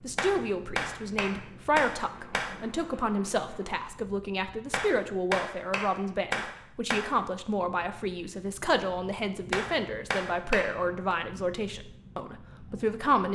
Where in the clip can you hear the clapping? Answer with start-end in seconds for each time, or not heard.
0.1-2.5, 4.7-7.0, 9.5-11.2.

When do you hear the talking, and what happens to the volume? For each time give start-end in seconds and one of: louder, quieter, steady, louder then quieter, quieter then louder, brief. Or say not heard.
0.0-13.3 steady.